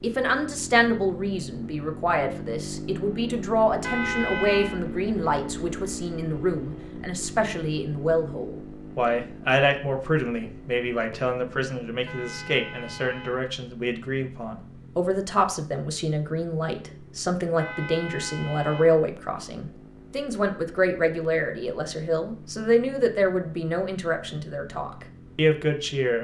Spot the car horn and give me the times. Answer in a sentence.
You can hear the car horn from 3.8 to 4.8 s, from 12.1 to 13.5 s and from 17.6 to 19.1 s.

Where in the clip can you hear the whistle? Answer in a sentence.
You can't hear the whistle here.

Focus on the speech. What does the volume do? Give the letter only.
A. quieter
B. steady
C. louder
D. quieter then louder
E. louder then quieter
B.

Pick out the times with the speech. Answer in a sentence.
The speech can be heard from 0.0 to 26.1 s.